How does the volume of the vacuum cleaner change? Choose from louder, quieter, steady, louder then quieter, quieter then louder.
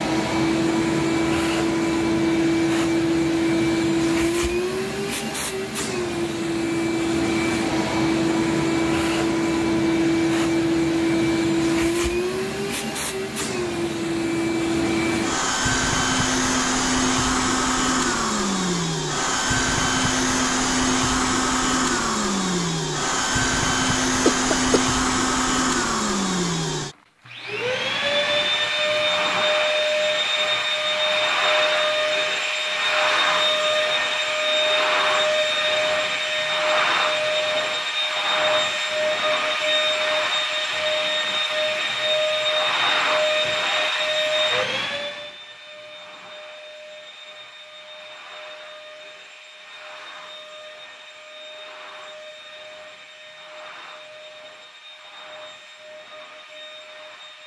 quieter.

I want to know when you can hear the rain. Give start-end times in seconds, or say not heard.
not heard.